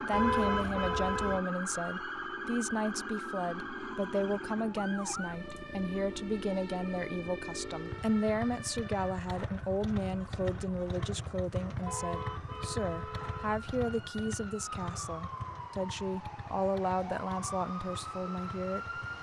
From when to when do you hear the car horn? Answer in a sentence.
The car horn can be heard from 0.1 to 1.4 s and from 11.8 to 13.6 s.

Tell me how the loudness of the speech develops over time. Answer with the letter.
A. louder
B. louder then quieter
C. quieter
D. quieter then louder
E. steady
E.